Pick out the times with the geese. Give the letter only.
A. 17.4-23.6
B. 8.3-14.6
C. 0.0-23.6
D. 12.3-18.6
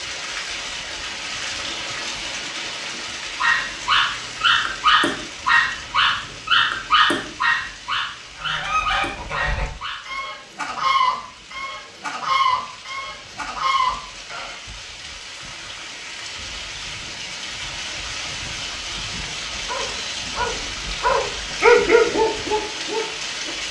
B.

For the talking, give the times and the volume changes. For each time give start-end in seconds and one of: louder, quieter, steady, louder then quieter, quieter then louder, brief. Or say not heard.
not heard.